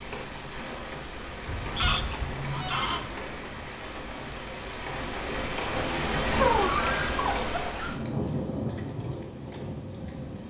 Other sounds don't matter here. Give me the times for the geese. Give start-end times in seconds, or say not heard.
1.4-3.1, 6.3-8.0.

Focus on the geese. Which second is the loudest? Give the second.
7 s.